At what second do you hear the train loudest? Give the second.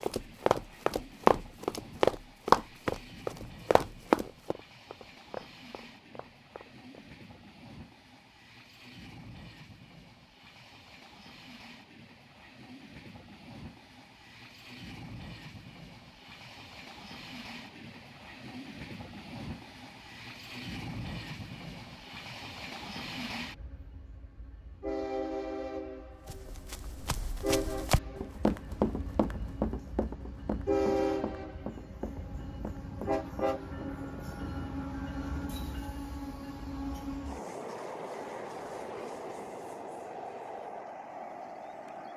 31 s.